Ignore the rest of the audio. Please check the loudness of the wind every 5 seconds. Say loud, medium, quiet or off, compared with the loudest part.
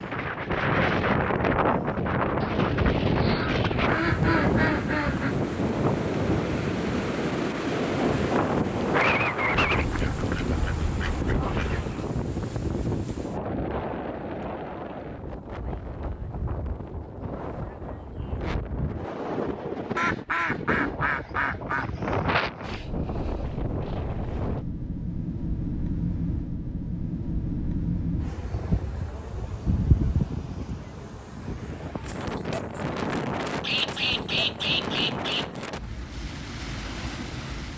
loud, loud, medium, medium, medium, medium, medium, medium.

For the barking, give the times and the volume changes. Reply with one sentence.
The barking can't be heard in this clip.